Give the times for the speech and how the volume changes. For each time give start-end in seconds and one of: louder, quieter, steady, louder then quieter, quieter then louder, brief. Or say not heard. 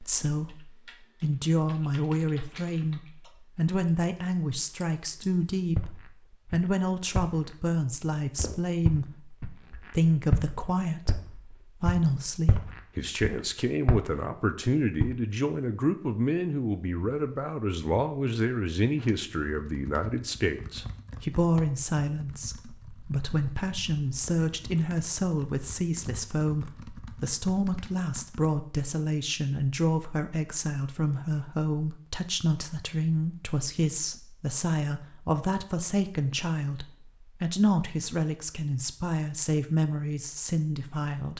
0.0-41.3 steady.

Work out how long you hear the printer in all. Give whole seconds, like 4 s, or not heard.
not heard.